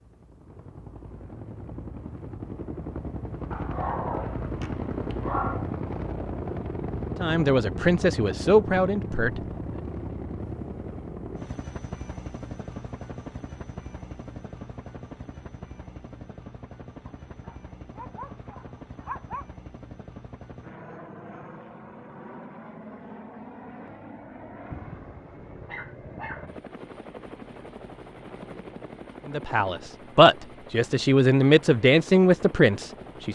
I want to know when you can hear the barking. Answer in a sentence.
The barking can be heard from 3.5 to 5.7 s, from 17.1 to 19.4 s and from 24.7 to 26.5 s.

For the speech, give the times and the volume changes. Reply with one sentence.
The speech can be heard briefly from 7.2 to 9.4 s; and from 29.2 to 33.3 s, getting quieter then louder.